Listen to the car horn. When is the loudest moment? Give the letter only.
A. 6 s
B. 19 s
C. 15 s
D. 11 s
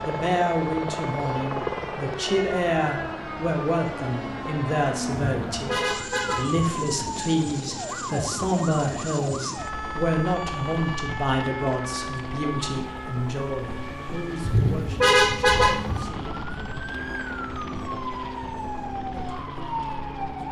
C.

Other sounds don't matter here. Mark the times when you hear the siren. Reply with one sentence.
You can hear the siren from 0.0 to 20.4 s.